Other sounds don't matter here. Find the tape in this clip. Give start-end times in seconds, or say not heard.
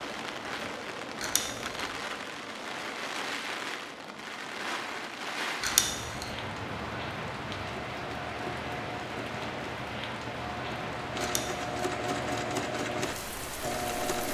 not heard.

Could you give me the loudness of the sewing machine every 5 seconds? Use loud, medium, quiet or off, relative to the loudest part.
off, medium, loud.